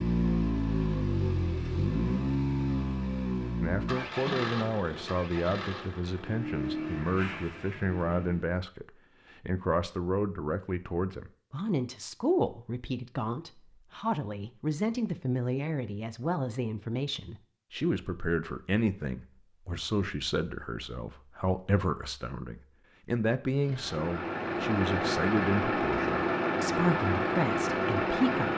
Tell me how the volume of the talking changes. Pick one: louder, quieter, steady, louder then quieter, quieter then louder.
steady.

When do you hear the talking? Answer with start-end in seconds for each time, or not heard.
3.6-28.5.